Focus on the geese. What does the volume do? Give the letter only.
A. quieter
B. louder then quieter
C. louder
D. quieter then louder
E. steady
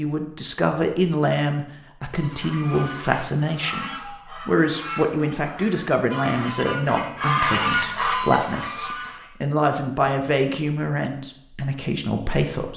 C.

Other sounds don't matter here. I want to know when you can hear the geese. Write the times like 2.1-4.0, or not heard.
2.1-9.3.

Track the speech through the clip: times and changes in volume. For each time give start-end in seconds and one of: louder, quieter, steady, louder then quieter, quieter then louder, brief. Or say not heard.
0.0-12.7 steady.